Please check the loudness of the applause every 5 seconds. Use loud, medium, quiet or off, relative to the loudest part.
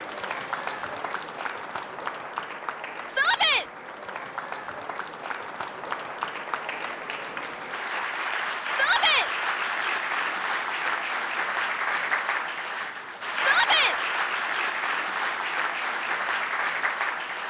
medium, loud, loud, loud.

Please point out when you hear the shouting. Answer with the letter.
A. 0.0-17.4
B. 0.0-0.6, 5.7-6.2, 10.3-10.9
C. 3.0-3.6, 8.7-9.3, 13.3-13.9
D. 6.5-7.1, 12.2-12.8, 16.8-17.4
C.